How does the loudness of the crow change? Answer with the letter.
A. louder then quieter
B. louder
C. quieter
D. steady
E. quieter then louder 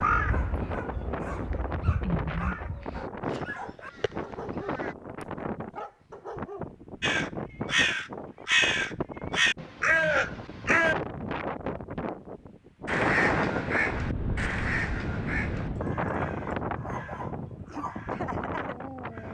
A.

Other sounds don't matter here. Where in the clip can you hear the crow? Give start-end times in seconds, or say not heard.
0.0-5.0, 7.0-10.9, 12.8-19.3.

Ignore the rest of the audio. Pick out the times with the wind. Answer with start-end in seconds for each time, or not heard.
0.0-19.3.